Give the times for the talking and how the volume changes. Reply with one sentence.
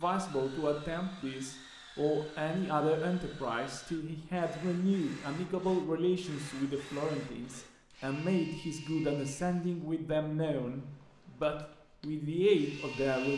The talking can be heard from 0.0 to 13.3 s, at a steady volume.